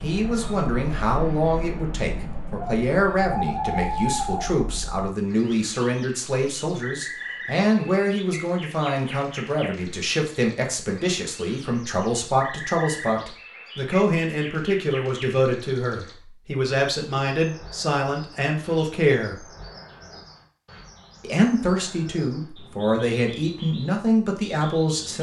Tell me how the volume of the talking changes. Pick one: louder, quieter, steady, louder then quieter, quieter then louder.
steady.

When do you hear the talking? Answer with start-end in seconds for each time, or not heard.
0.0-19.4, 21.2-25.1.